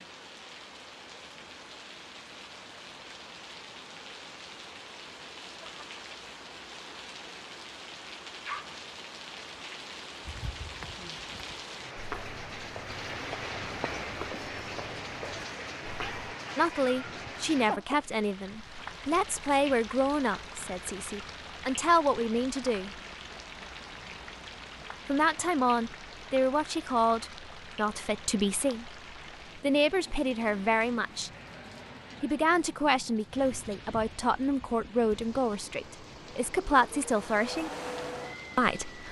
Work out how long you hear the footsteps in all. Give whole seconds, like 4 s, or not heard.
6 s.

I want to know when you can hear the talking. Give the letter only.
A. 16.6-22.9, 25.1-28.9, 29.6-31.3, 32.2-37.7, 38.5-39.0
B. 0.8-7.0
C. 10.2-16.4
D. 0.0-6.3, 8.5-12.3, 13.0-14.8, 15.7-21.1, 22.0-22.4
A.